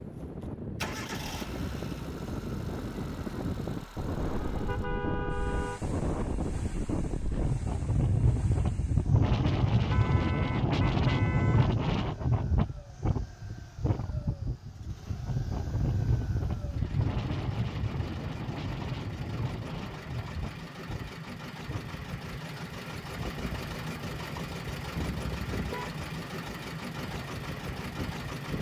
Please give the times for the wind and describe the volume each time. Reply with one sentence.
You can hear the wind from 0.0 to 28.5 s, getting louder then quieter.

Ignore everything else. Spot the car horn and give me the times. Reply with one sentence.
The car horn can be heard from 4.2 to 5.8 s, from 9.8 to 11.8 s and from 24.9 to 25.9 s.